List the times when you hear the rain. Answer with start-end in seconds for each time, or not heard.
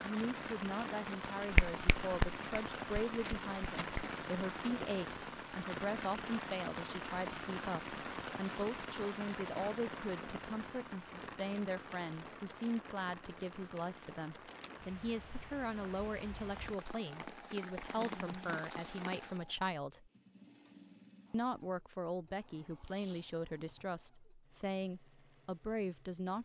0.0-19.4.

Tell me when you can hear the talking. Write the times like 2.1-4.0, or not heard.
0.0-20.1, 21.3-26.3.